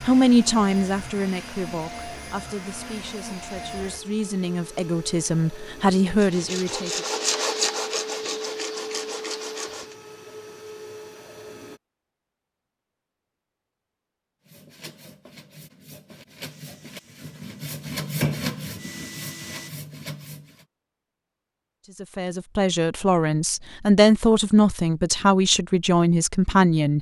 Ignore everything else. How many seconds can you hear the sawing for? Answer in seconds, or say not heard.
10 s.